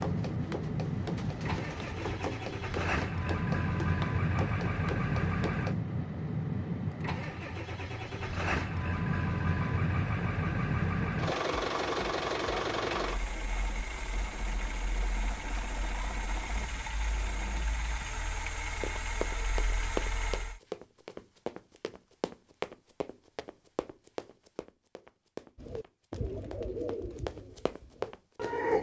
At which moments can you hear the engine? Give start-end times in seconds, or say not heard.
0.0-20.6.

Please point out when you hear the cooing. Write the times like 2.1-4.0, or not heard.
0.0-2.6, 25.6-28.7.